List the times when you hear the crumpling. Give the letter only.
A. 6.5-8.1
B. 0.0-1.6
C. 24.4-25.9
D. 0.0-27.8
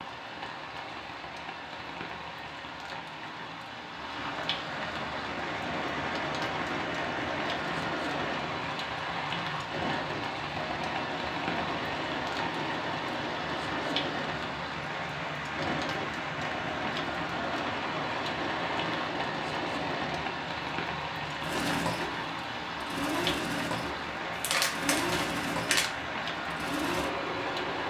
C.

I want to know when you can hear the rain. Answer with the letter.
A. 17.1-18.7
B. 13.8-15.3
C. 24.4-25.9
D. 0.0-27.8
D.